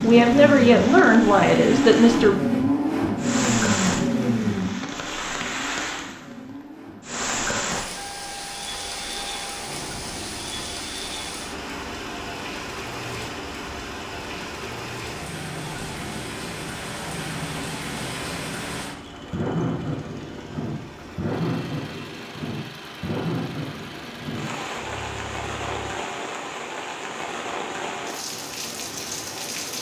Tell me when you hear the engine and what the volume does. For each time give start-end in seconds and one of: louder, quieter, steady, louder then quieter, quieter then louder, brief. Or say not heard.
0.0-25.9 quieter.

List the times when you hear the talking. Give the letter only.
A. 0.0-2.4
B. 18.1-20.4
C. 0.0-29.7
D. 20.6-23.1
A.